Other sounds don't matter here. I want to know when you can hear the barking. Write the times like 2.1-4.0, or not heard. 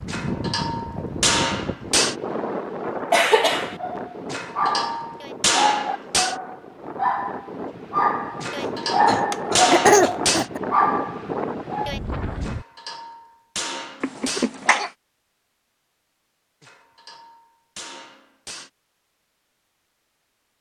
3.6-11.9.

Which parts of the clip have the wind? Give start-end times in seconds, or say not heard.
0.0-12.7.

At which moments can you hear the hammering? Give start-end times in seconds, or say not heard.
0.1-2.1, 4.3-6.3, 8.4-10.4, 12.4-14.5, 16.6-18.7.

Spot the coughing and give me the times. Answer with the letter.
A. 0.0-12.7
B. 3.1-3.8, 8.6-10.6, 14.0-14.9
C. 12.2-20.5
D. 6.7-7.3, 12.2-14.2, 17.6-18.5
B.